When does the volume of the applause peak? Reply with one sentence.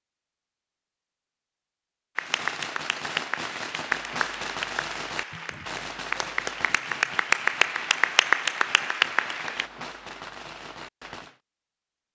The volume of the applause peaks at 8 seconds.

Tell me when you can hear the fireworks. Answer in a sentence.
You can hear the fireworks from 2.1 to 11.4 s.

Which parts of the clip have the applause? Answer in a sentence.
The applause can be heard from 2.1 to 9.7 s.